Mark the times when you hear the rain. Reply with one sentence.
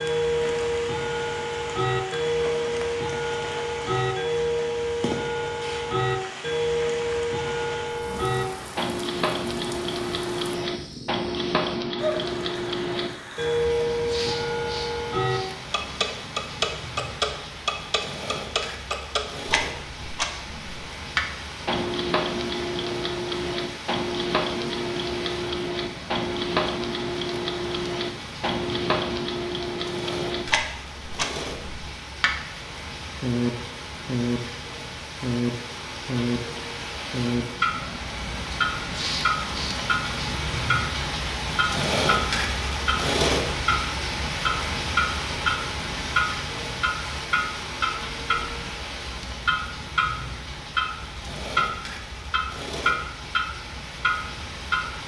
You can hear the rain from 0.0 to 55.0 s.